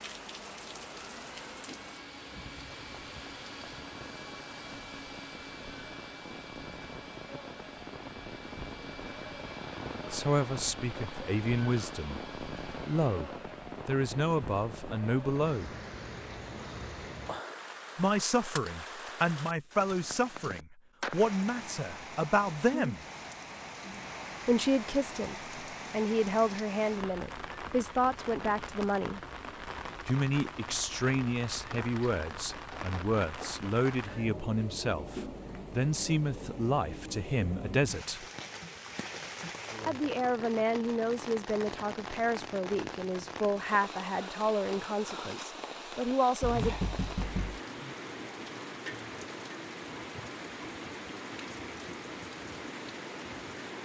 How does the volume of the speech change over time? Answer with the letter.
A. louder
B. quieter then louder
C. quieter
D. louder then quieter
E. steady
E.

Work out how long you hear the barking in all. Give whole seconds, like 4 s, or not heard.
not heard.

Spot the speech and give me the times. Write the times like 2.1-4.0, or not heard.
10.1-15.7, 17.9-23.0, 24.4-29.2, 30.1-38.2, 39.9-46.8.